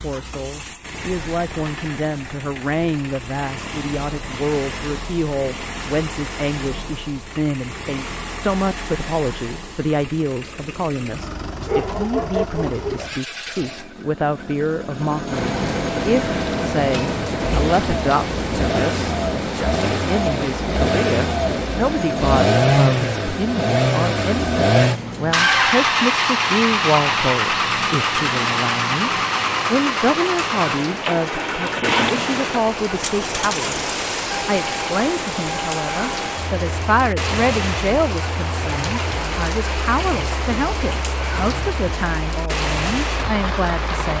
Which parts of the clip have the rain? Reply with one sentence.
The rain can be heard from 15.2 to 44.1 s.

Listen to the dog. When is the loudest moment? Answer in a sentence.
The volume of the dog peaks at 12 seconds.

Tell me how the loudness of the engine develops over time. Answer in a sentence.
The loudness of the engine goes up, then down.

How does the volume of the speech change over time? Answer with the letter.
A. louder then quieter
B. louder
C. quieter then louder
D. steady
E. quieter
D.